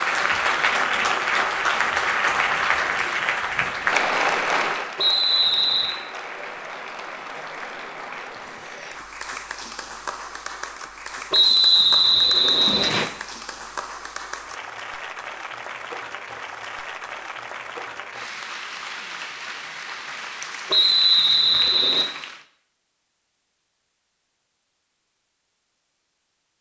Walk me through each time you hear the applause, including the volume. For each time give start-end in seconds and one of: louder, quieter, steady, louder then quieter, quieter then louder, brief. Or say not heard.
0.0-22.4 quieter.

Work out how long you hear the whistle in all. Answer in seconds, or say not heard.
4 s.